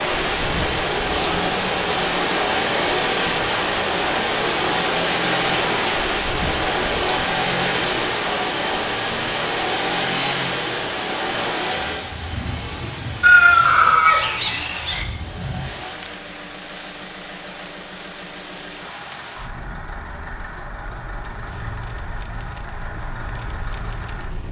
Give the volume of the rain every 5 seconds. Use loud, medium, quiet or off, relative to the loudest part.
loud, loud, medium, quiet, quiet.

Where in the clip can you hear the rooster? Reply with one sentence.
The rooster can be heard from 13.2 to 15.1 s.